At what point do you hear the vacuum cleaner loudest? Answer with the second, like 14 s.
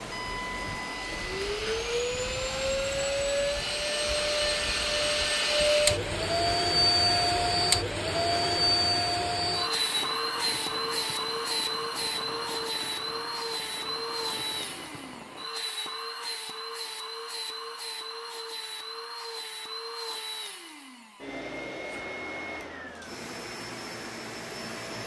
7 s.